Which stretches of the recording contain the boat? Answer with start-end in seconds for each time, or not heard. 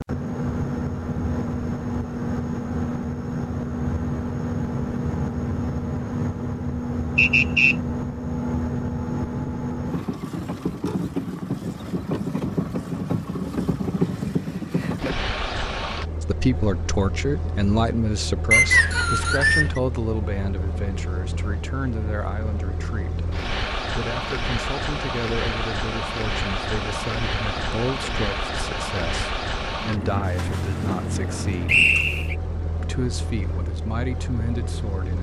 0.0-35.1.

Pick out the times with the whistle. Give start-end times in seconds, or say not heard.
7.2-7.8, 18.5-19.8, 31.6-32.4.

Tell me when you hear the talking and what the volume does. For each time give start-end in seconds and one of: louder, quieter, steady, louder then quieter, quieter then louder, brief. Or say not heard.
16.2-31.8 quieter
32.8-35.1 brief.